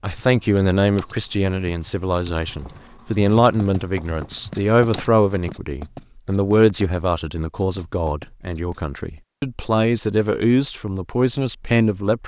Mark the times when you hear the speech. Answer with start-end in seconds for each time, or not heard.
0.0-12.2.